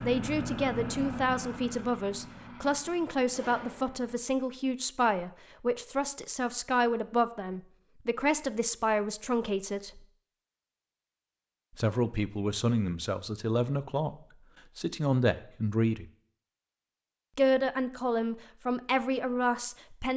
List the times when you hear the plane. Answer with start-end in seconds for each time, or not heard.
0.0-4.2.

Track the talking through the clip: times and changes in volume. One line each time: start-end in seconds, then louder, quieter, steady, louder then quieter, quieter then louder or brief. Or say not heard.
0.0-10.0 steady
11.8-14.2 brief
14.8-16.1 brief
17.4-20.1 brief.